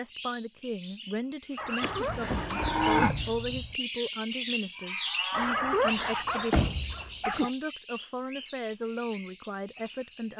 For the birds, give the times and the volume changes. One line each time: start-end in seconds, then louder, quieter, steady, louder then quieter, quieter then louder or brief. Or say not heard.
0.0-10.3 louder then quieter.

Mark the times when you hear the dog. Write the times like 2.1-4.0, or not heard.
1.6-2.8, 5.3-7.5.